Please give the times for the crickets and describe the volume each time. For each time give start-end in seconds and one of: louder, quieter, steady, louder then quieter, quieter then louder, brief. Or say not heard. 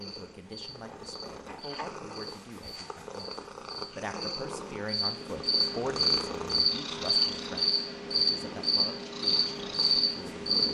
0.0-10.6 louder.